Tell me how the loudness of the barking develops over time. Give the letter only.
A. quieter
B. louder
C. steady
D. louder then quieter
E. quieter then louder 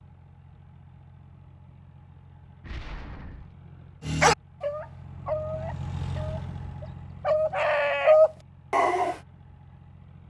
E.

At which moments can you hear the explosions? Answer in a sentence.
The explosions can be heard from 2.6 to 3.5 s.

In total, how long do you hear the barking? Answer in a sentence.
The barking can be heard for 5 seconds in total.